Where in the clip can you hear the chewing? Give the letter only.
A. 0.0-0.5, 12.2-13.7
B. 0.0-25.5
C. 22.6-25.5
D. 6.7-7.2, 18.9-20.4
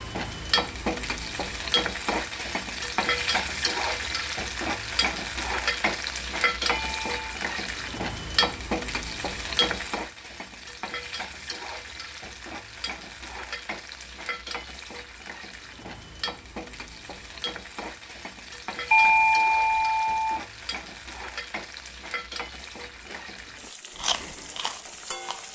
C.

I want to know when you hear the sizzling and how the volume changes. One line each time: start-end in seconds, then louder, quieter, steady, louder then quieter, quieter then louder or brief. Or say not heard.
0.0-25.5 quieter.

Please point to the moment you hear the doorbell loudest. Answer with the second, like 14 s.
19 s.